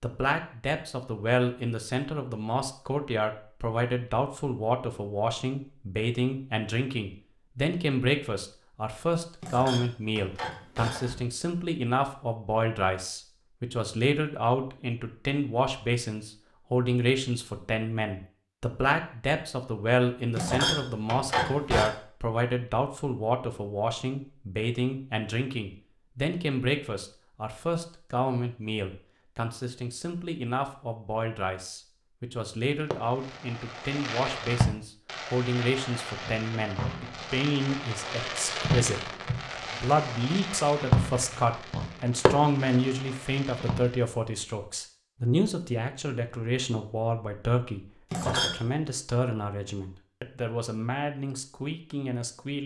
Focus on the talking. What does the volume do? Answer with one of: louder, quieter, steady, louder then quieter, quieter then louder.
steady.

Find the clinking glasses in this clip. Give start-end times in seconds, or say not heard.
9.4-11.2, 20.4-21.9, 48.1-48.6.